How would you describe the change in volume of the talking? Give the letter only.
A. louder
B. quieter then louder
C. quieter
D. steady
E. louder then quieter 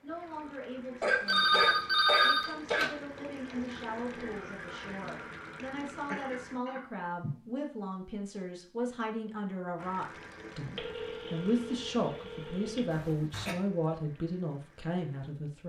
A.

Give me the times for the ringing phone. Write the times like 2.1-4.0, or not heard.
1.2-2.9, 10.8-13.1.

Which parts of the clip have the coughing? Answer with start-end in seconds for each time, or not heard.
1.0-2.9, 6.0-7.3, 12.9-13.6.